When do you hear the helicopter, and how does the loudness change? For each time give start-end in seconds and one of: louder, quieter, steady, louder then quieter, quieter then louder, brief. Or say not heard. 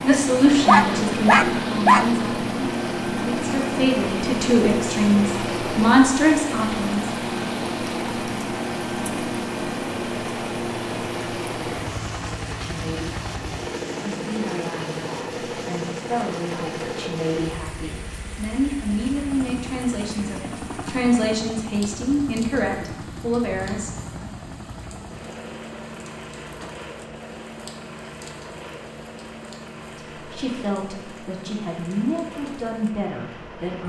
0.0-33.8 quieter.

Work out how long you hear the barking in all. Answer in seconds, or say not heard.
2 s.